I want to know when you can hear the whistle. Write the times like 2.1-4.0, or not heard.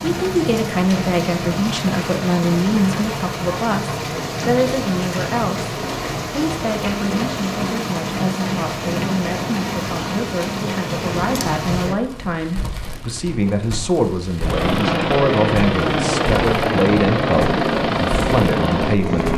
not heard.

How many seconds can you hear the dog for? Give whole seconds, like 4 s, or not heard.
not heard.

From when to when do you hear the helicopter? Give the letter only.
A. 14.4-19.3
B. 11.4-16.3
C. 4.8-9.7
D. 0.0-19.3
A.